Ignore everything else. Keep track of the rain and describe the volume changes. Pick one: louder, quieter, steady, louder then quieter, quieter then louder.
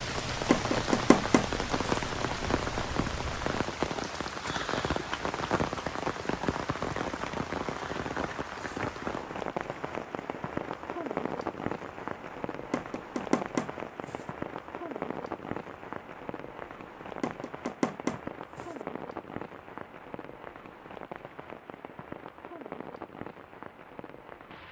quieter.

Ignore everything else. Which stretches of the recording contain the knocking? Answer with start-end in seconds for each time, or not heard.
0.5-2.0, 12.7-14.2, 17.2-18.8.